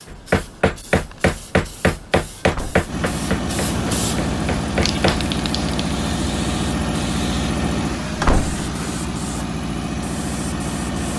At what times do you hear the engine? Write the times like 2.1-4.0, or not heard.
2.9-11.1.